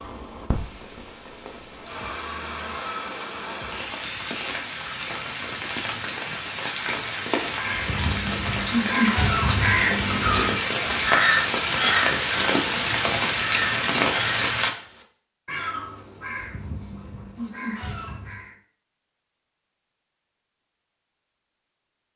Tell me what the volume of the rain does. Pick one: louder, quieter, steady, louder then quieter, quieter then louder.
louder.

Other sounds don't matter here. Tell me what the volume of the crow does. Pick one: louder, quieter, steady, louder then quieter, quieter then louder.
quieter.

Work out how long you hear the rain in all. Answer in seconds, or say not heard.
15 s.